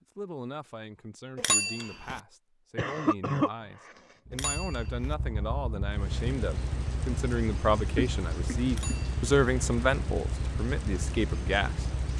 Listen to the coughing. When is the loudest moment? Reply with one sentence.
The volume of the coughing peaks at 3 seconds.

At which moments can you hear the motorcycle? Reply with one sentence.
The motorcycle can be heard from 4.3 to 12.1 s.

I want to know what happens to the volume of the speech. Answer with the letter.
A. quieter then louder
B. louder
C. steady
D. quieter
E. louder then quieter
B.